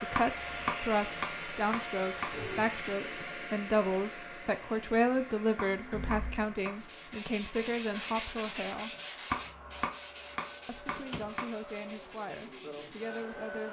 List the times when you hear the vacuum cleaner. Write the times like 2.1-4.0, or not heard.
0.0-13.6.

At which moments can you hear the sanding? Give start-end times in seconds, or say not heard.
6.7-13.2.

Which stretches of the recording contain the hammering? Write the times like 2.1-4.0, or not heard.
0.1-2.3, 5.5-6.8, 9.3-11.4.